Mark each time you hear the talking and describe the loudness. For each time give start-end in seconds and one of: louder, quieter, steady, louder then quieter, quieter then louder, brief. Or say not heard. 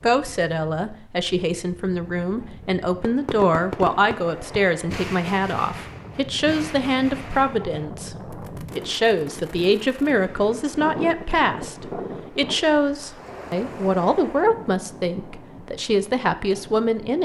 0.0-17.1 steady.